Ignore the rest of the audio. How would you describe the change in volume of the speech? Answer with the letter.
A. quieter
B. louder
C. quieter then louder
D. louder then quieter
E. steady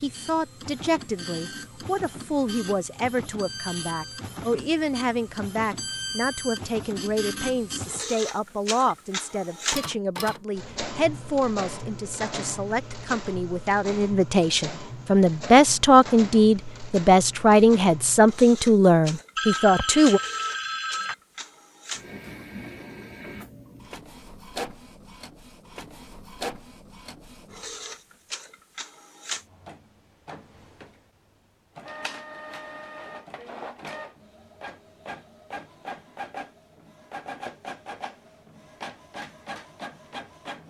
B.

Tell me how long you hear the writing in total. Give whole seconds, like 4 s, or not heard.
not heard.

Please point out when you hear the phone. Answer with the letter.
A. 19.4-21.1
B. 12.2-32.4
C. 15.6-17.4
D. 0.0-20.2
A.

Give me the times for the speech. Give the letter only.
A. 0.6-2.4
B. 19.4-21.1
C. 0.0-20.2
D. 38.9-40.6
C.